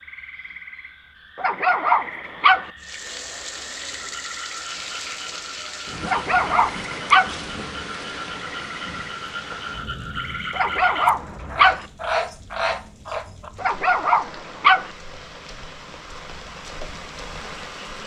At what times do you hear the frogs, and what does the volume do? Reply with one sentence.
You can hear the frogs from 0.0 to 13.5 s, getting louder.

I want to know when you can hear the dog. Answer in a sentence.
You can hear the dog from 1.4 to 2.7 s, from 6.0 to 7.3 s, from 10.5 to 11.8 s and from 13.6 to 14.9 s.